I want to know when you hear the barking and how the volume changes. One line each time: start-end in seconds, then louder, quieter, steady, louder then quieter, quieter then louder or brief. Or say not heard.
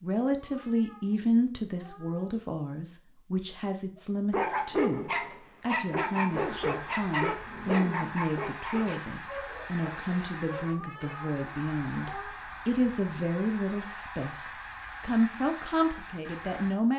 4.3-11.2 quieter.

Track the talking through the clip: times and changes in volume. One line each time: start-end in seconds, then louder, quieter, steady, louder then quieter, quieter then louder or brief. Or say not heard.
0.0-16.9 steady.